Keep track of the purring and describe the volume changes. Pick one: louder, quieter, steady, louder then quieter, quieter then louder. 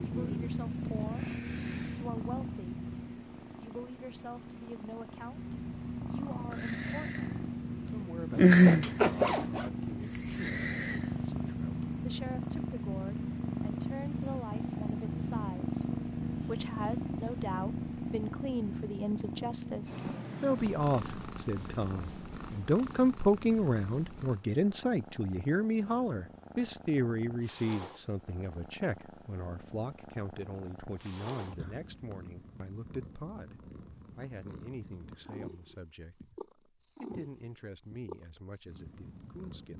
louder then quieter.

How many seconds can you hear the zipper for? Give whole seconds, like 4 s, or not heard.
2 s.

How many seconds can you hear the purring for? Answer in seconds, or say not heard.
40 s.